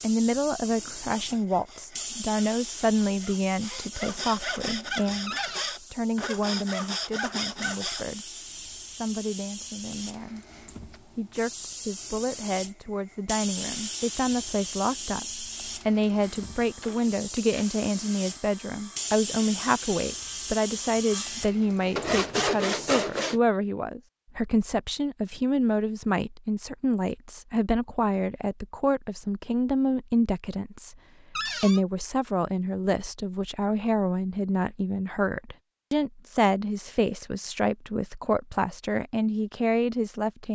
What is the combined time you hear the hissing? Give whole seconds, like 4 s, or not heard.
23 s.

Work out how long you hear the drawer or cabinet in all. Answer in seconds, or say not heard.
2 s.